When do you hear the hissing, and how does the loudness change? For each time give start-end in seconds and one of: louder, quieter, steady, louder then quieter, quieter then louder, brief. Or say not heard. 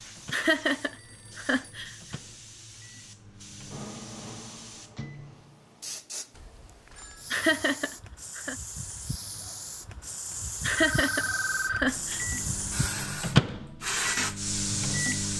0.0-15.3 louder.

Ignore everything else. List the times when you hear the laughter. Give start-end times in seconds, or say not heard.
0.3-1.9, 7.3-8.6, 10.6-12.2.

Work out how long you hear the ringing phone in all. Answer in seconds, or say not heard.
3 s.